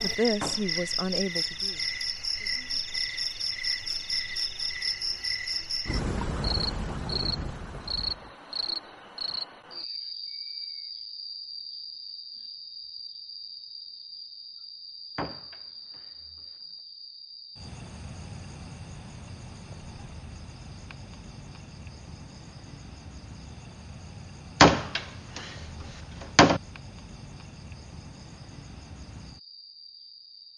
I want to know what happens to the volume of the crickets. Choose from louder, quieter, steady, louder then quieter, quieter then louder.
quieter.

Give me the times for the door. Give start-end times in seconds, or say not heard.
0.4-0.8, 15.2-16.4, 24.6-26.6.